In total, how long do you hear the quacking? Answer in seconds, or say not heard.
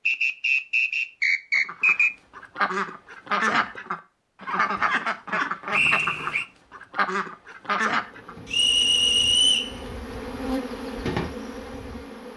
7 s.